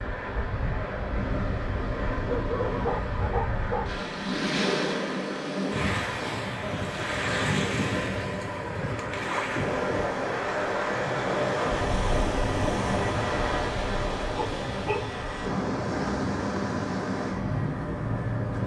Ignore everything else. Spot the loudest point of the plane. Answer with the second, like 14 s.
11 s.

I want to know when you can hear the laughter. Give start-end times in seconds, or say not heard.
10.9-11.8.